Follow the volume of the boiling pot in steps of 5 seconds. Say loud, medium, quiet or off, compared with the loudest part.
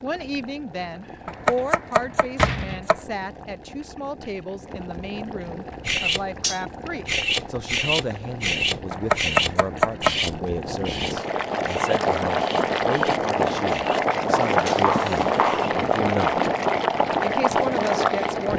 quiet, quiet, loud, loud.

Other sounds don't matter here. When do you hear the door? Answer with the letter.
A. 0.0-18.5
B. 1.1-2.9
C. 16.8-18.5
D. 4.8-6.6
B.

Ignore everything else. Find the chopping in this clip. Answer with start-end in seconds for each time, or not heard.
1.2-3.0, 8.9-10.2, 14.3-15.7.